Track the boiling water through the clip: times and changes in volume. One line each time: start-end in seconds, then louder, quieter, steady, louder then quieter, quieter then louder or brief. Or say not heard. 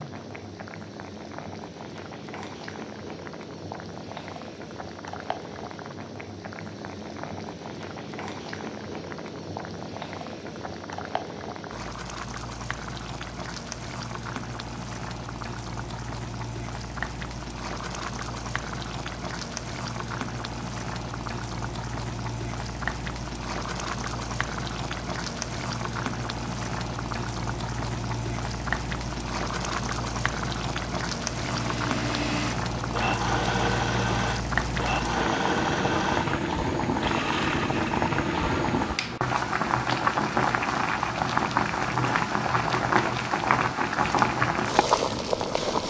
0.0-45.8 louder.